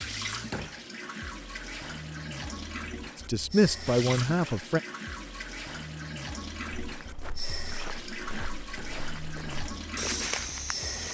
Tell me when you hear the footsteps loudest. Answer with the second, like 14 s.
10 s.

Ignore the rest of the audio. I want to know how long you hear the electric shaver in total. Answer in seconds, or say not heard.
not heard.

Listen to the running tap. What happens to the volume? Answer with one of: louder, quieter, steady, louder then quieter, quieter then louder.
steady.